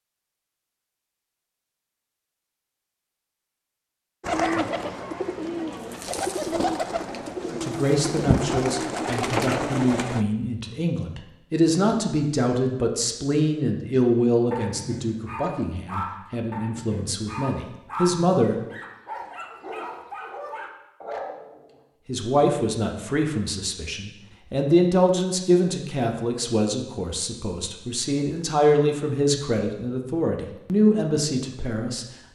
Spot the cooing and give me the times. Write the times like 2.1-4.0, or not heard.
4.2-10.2.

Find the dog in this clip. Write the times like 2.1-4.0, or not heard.
14.5-21.8.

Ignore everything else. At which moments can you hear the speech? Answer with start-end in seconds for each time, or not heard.
7.5-18.7, 22.1-32.0.